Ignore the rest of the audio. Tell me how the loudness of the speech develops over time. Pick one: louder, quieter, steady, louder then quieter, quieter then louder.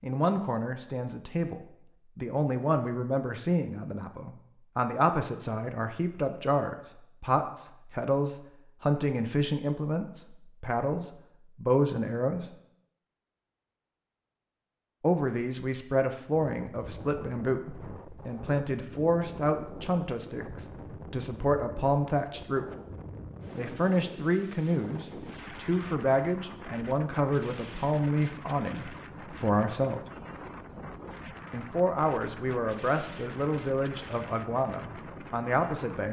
steady.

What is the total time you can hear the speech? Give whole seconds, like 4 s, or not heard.
31 s.